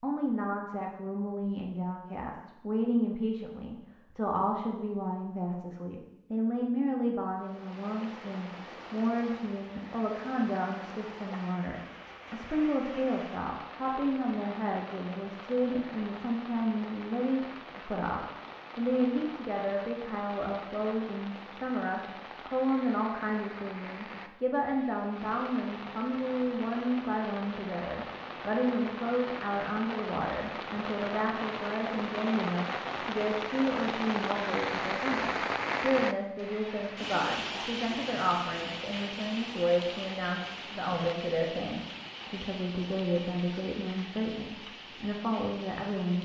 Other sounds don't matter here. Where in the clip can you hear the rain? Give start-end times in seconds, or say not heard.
7.3-46.2.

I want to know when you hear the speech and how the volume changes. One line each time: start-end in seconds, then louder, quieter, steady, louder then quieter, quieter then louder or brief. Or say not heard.
0.0-46.2 steady.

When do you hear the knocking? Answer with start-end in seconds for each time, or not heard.
not heard.